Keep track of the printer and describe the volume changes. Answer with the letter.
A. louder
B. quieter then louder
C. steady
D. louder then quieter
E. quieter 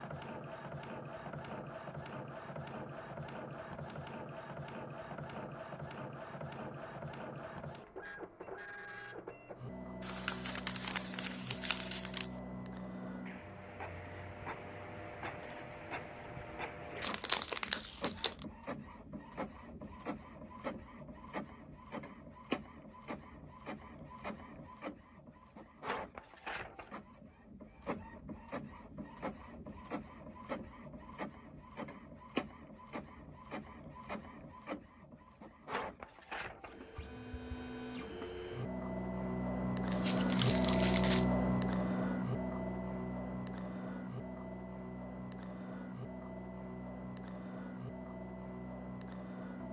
A.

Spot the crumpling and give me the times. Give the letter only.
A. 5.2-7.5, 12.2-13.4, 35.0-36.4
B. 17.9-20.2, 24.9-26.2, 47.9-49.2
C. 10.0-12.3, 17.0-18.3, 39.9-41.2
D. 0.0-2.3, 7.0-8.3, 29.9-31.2
C.